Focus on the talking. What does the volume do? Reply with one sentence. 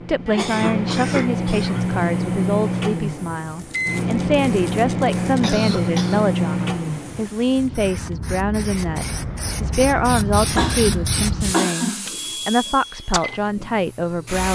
The loudness of the talking stays about the same.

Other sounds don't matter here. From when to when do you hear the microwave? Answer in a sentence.
The microwave can be heard from 0.0 to 7.3 s and from 12.0 to 14.5 s.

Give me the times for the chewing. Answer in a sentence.
You can't hear the chewing here.